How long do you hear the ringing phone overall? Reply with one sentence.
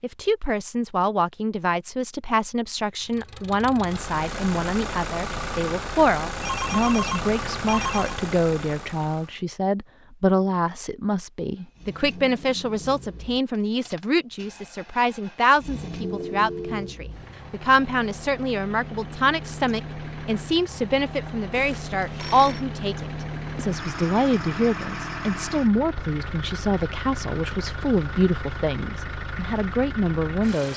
You can hear the ringing phone for 4 seconds altogether.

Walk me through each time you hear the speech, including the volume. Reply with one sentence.
You can hear the speech from 0.0 to 30.7 s, at a steady volume.